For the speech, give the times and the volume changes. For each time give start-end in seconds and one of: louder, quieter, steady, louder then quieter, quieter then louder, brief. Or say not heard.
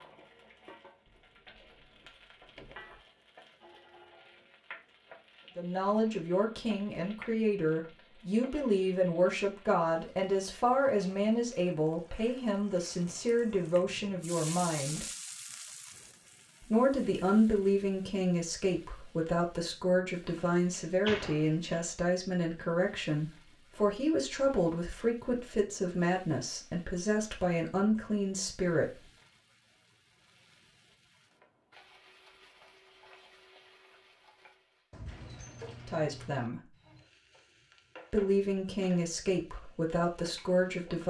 5.5-15.1 steady
16.6-29.1 steady
35.9-36.6 brief
38.1-41.0 brief.